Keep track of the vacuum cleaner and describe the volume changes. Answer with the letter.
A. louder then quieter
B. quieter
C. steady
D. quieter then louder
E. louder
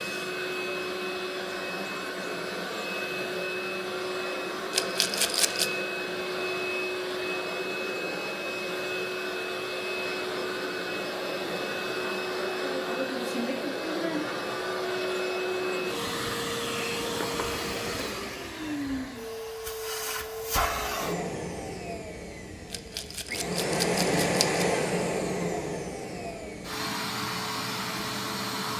C.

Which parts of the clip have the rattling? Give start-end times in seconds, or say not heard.
4.7-5.7, 22.7-24.6.